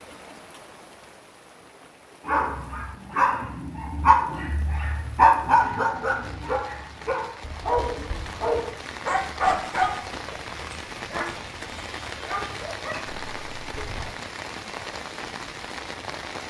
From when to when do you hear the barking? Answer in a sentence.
The barking can be heard from 2.2 to 14.1 s.